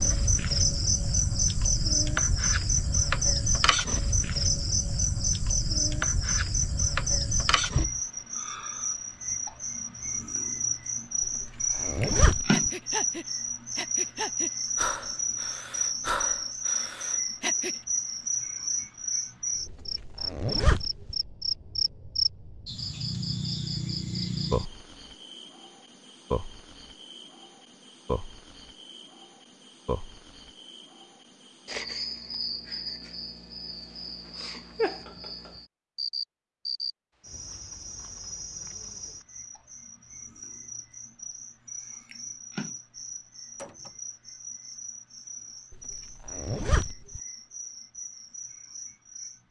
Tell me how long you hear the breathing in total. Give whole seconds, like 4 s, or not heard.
5 s.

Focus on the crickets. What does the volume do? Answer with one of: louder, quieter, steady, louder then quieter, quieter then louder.
quieter.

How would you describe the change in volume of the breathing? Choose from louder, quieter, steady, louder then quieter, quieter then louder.
quieter.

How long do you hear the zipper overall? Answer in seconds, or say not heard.
4 s.